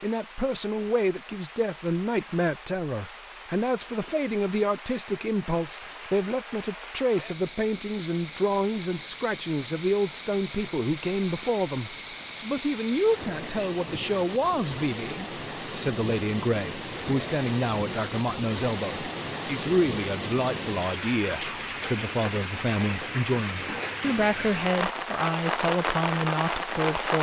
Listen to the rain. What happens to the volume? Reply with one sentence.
The loudness of the rain goes up.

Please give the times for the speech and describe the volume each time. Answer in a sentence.
You can hear the speech from 0.0 to 27.1 s, at a steady volume.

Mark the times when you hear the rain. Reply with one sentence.
The rain can be heard from 0.0 to 27.1 s.